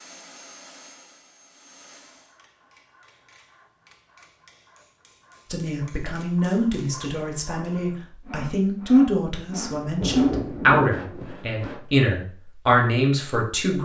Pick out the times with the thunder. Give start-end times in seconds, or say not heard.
9.5-11.3.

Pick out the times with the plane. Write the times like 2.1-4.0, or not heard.
0.0-2.4.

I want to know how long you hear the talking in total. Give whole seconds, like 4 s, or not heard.
8 s.